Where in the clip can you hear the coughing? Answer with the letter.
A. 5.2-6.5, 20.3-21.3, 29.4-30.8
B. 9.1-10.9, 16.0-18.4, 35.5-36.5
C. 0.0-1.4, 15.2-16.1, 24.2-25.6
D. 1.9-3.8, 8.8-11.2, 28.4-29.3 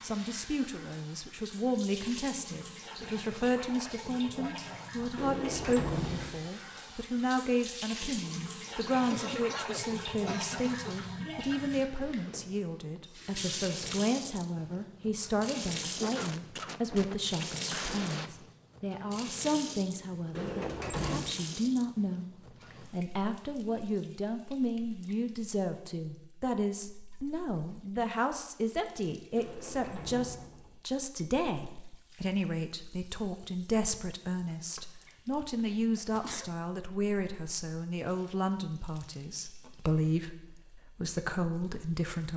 B.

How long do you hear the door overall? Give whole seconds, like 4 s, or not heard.
4 s.